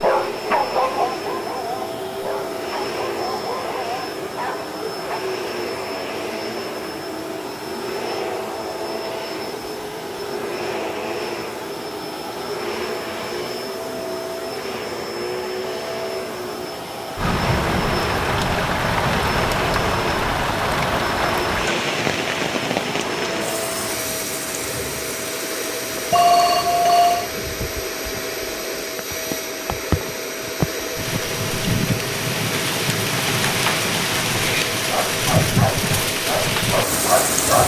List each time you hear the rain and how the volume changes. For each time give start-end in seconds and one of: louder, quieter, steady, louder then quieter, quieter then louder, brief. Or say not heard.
17.1-37.6 quieter then louder.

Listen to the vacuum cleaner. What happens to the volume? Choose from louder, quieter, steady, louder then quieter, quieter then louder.
steady.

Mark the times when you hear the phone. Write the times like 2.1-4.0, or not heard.
26.1-27.3.